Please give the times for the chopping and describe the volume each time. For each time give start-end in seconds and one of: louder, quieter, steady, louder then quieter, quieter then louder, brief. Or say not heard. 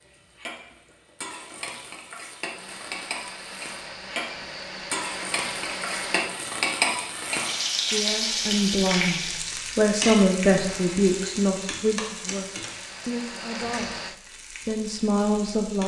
not heard.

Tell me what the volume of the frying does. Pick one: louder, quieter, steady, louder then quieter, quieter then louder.
louder then quieter.